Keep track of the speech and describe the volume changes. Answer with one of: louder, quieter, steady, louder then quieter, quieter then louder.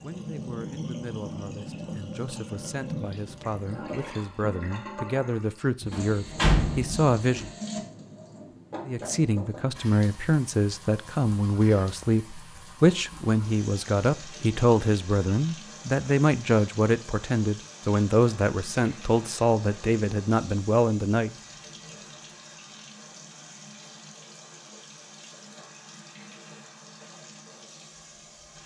louder.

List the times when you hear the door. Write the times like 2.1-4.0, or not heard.
5.8-7.5.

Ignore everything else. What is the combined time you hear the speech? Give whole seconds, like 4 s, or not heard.
20 s.